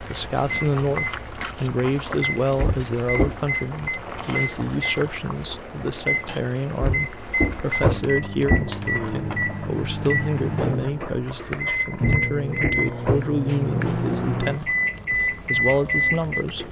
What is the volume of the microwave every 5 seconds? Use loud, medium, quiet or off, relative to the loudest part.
medium, medium, loud, loud.